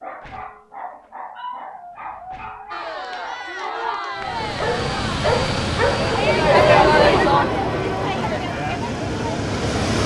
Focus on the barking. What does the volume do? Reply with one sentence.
The loudness of the barking goes up.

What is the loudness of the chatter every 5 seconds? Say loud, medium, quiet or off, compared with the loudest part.
medium, loud.